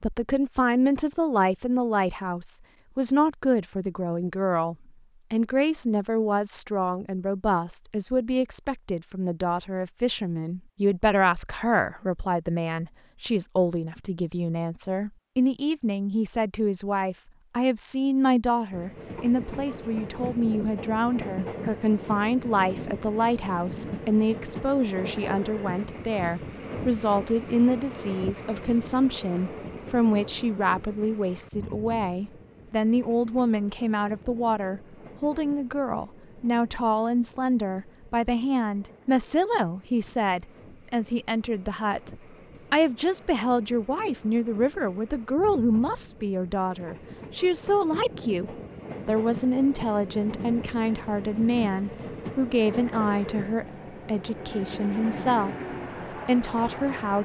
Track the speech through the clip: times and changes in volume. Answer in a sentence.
The speech can be heard from 0.0 to 57.1 s, at a steady volume.